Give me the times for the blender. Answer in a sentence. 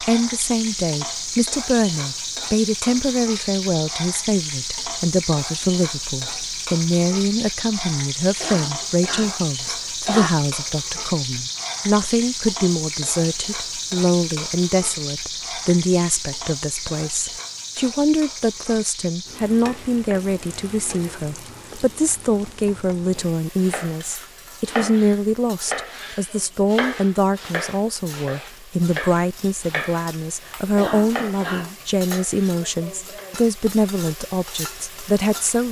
You can't hear the blender here.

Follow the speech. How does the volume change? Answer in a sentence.
The volume of the speech stays about the same.